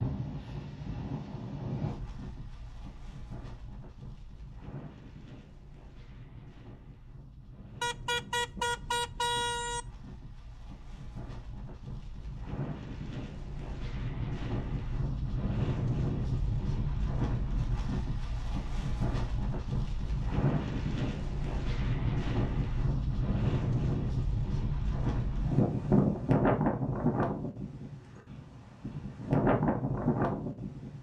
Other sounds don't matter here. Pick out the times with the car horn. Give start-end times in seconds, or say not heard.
7.8-9.8.